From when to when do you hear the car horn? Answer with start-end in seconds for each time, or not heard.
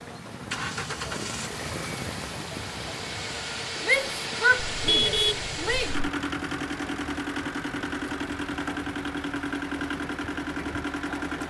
4.5-6.0.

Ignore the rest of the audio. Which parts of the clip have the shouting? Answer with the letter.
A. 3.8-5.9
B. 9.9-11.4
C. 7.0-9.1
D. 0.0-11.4
A.